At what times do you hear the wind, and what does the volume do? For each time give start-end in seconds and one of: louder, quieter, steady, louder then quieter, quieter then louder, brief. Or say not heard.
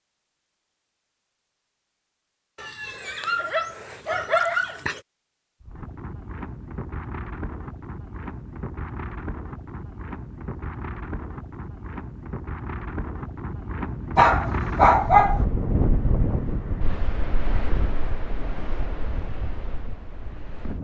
5.6-20.7 louder then quieter.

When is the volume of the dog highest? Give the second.
15 s.